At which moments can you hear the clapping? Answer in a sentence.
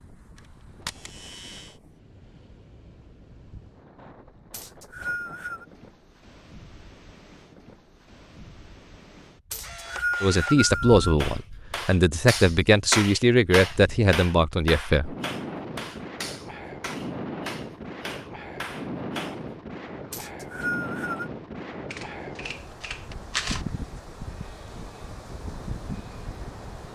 The clapping can be heard from 11.2 to 19.4 s.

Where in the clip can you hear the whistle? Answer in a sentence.
The whistle can be heard from 4.5 to 5.7 s, from 9.5 to 11.2 s and from 20.1 to 21.3 s.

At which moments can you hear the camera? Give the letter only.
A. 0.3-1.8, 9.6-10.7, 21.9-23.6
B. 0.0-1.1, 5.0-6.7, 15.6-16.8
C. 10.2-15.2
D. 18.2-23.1
A.